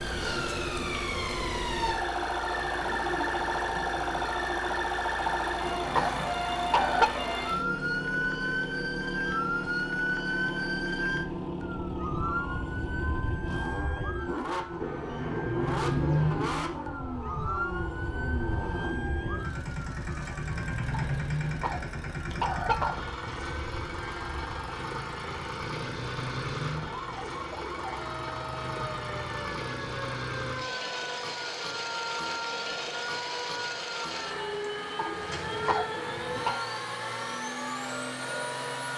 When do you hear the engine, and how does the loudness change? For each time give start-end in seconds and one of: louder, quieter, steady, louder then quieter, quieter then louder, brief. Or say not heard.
0.0-38.9 steady.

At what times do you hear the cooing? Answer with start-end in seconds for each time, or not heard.
2.5-4.3, 14.8-16.6, 34.5-36.5.